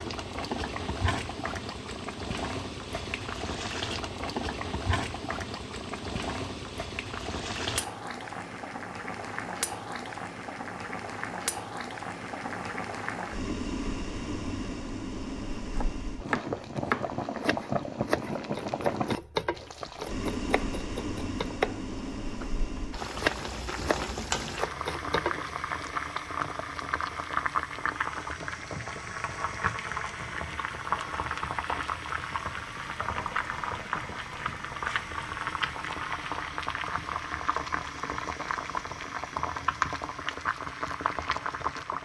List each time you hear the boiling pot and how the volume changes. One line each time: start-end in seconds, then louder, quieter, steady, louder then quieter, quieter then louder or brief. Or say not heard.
0.0-41.9 steady.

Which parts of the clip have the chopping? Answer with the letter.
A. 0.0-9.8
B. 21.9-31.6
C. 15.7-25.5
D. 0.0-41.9
C.